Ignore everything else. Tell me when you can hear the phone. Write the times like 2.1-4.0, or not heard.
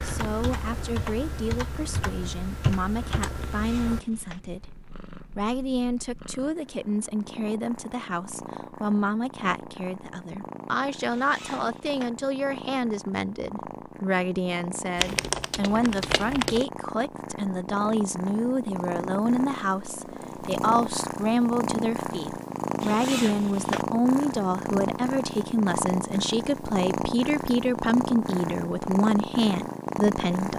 not heard.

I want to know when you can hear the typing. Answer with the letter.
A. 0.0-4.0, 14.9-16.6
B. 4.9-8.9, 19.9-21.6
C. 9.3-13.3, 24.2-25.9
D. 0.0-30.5
A.